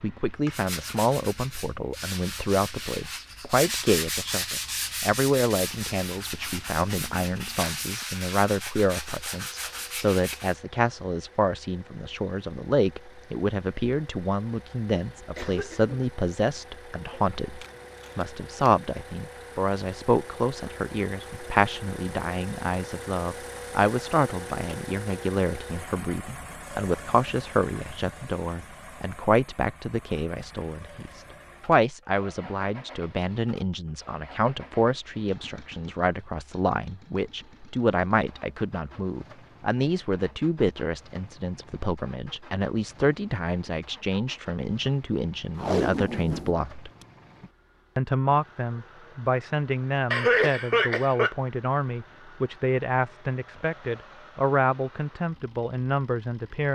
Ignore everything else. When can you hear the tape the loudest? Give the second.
46 s.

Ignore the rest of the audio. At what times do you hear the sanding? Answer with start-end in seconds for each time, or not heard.
0.5-10.6.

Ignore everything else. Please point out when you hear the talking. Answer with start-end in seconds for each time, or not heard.
0.0-46.9, 48.0-56.7.